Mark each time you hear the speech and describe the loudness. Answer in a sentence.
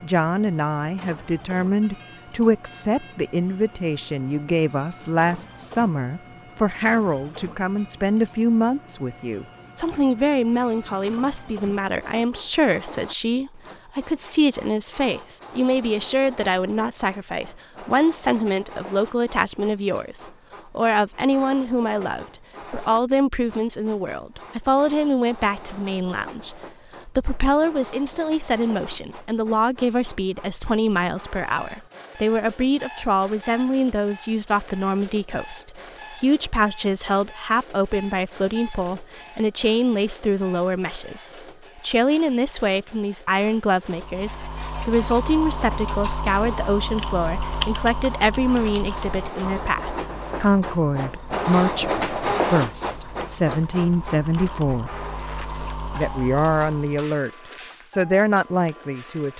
The speech can be heard from 0.0 to 59.3 s, at a steady volume.